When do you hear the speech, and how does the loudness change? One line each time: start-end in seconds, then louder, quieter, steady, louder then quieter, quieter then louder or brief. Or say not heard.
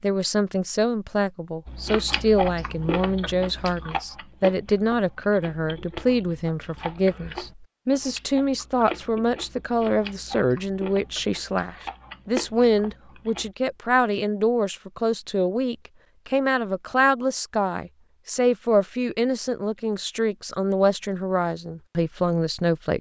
0.0-22.9 steady.